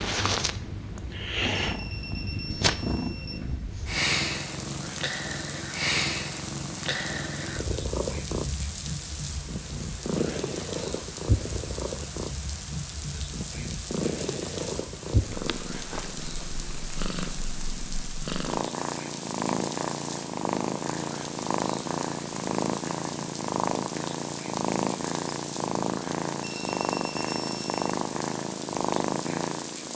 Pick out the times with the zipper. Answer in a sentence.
You can't hear the zipper here.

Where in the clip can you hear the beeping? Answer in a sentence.
The beeping can be heard from 1.6 to 3.5 s and from 26.4 to 27.9 s.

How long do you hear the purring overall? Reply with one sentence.
You can hear the purring for 30 seconds altogether.